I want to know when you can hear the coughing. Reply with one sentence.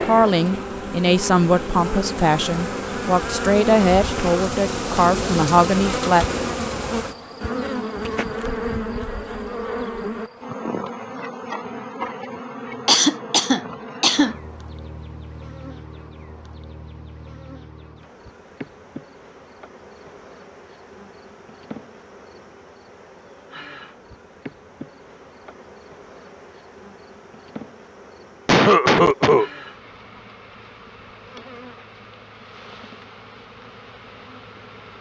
You can hear the coughing from 12.8 to 14.3 s and from 28.4 to 29.5 s.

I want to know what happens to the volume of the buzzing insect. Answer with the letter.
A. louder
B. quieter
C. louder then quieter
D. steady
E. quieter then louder
B.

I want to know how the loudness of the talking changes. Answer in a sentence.
The loudness of the talking stays about the same.